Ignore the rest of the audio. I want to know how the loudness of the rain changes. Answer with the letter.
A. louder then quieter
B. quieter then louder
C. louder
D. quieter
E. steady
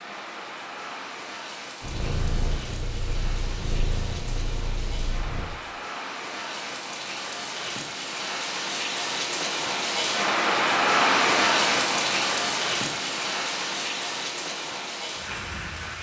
A.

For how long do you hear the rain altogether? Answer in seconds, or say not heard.
16 s.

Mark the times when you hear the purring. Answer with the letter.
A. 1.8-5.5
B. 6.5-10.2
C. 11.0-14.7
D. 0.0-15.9
A.